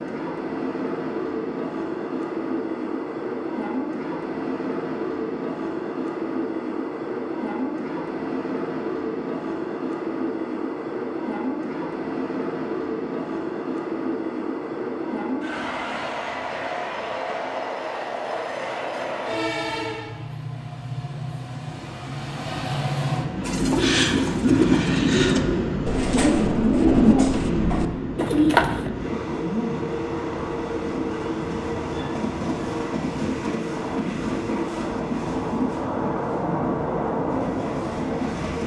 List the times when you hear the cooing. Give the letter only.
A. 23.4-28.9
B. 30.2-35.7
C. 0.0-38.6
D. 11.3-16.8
A.